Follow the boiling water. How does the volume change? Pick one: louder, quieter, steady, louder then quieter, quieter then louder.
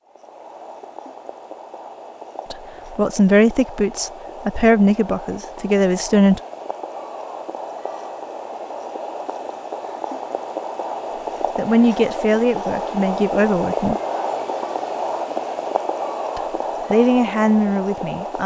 louder.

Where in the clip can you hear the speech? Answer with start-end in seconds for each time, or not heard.
2.5-6.4, 11.6-14.0, 16.4-18.4.